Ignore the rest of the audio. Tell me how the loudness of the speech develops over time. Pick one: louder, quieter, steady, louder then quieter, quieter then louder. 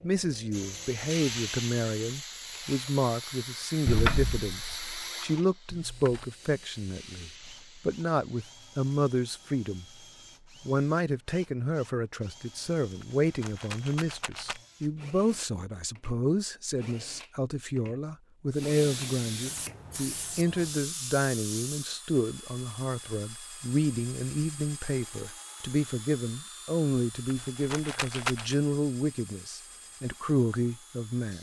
steady.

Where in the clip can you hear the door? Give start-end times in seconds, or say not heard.
3.9-5.0.